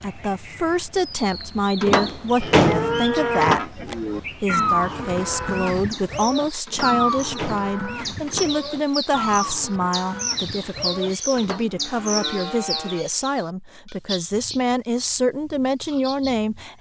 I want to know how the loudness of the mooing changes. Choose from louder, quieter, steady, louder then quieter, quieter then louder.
quieter.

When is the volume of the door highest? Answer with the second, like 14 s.
3 s.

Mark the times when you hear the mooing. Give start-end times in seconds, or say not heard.
2.4-13.1.